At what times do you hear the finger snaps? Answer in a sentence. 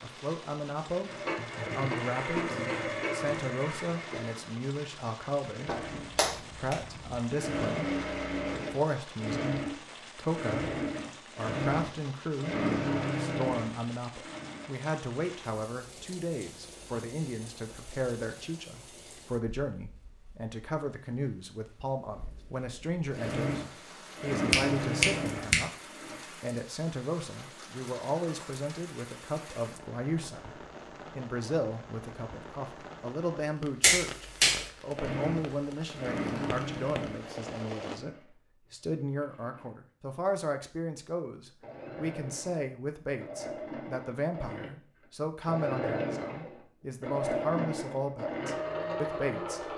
The finger snaps can be heard from 5.7 to 7.2 s, from 24.5 to 25.6 s and from 33.8 to 34.6 s.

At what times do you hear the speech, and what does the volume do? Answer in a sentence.
The speech can be heard from 0.0 to 8.0 s, at a steady volume; and from 8.7 to 49.7 s, at a steady volume.